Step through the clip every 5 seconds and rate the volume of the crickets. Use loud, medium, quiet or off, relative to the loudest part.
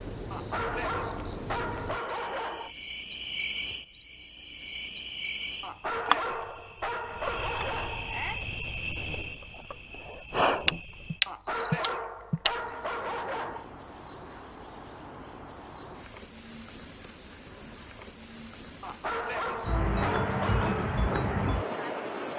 medium, medium, loud, loud, loud.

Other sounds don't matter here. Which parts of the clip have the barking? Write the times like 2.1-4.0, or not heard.
0.3-2.8, 5.6-8.4, 11.2-13.7, 18.8-20.8.